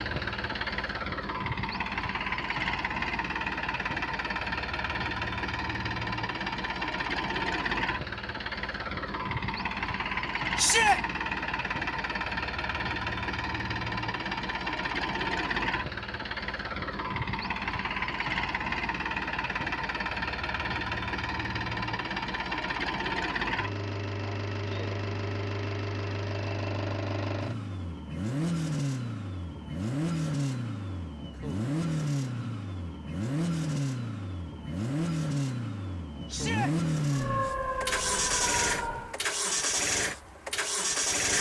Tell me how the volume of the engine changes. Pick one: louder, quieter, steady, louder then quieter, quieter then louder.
steady.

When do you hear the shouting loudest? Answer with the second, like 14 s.
11 s.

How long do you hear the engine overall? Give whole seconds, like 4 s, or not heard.
41 s.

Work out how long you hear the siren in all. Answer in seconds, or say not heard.
2 s.